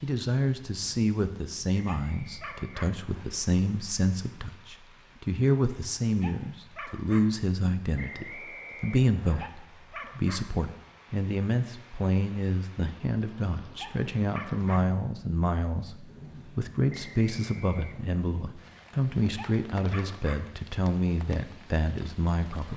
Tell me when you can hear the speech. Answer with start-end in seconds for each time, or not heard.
0.0-22.7.